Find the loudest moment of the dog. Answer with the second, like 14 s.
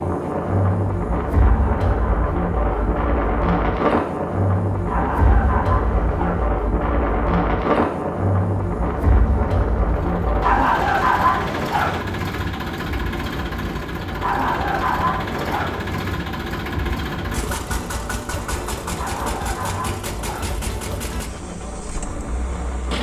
11 s.